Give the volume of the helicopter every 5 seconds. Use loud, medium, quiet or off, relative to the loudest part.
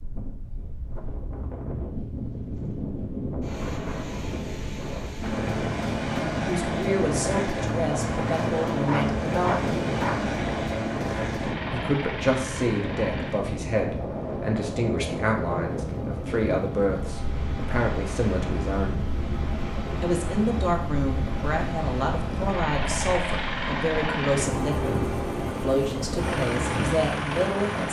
off, loud, loud, medium, loud, loud.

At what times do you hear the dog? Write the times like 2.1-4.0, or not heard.
8.8-10.2.